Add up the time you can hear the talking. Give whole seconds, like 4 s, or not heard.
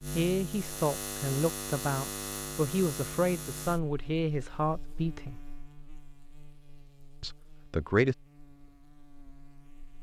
6 s.